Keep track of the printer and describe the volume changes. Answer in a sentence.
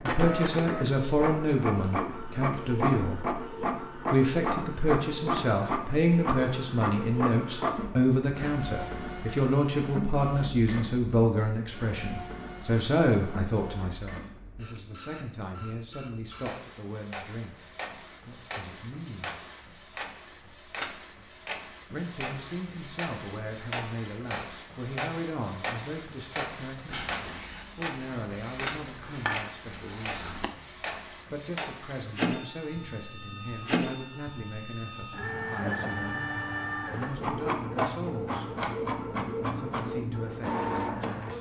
The loudness of the printer goes down, then up.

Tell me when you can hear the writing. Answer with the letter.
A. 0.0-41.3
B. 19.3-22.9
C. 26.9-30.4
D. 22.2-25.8
C.